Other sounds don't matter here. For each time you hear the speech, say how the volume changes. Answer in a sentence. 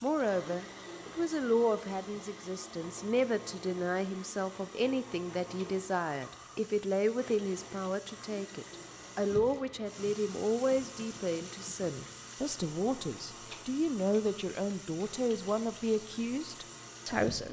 The speech can be heard from 0.0 to 17.4 s, at a steady volume.